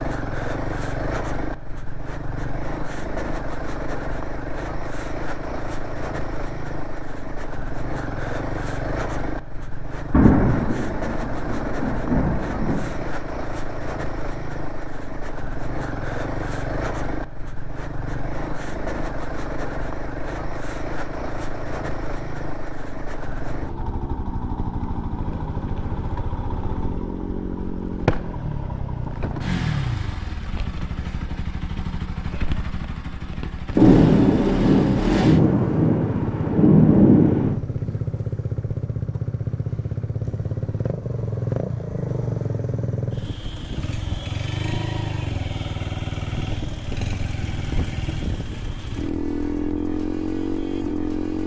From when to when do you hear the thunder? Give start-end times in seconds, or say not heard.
10.1-13.1, 33.8-37.5.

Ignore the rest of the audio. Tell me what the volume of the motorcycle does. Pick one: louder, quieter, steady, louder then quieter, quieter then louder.
steady.